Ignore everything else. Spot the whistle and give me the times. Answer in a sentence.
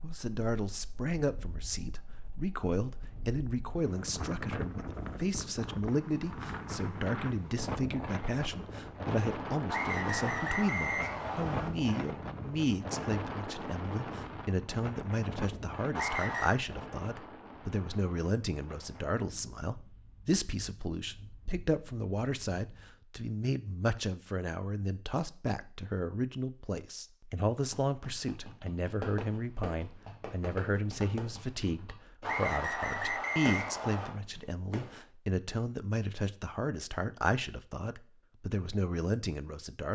The whistle can be heard from 9.7 to 11.7 s, from 15.9 to 16.6 s and from 32.2 to 34.1 s.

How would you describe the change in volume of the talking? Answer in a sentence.
The loudness of the talking stays about the same.